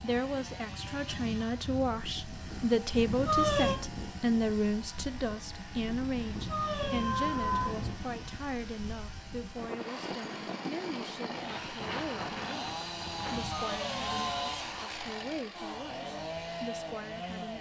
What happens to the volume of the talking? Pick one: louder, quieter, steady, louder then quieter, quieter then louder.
quieter.